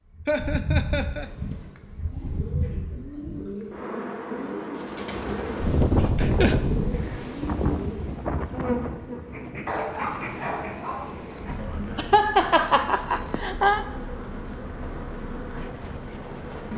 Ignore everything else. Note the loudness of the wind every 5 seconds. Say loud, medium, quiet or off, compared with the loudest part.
off, loud, quiet, quiet.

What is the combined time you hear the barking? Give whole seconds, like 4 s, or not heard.
2 s.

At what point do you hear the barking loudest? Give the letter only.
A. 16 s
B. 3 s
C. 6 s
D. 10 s
D.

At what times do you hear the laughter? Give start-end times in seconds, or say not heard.
0.2-1.3, 6.0-6.5, 11.9-13.8.